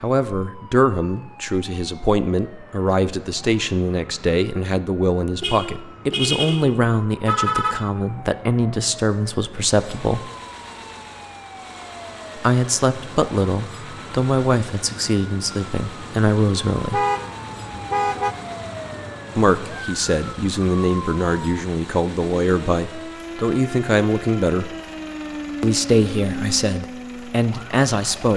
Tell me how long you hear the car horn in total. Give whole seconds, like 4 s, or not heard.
4 s.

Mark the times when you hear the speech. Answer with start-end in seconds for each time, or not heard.
0.0-10.3, 12.3-17.0, 19.4-24.7, 25.6-28.3.